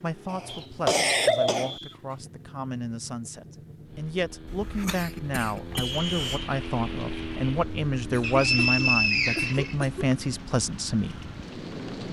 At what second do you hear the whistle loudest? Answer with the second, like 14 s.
9 s.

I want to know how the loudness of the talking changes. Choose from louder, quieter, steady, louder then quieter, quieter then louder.
louder.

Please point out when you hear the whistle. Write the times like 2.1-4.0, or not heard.
0.5-1.9, 5.8-6.5, 8.2-9.8.